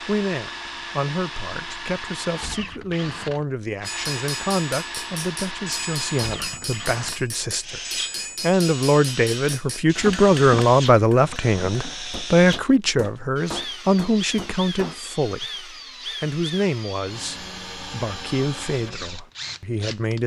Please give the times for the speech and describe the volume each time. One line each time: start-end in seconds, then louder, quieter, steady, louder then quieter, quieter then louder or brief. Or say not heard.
0.1-20.2 louder then quieter.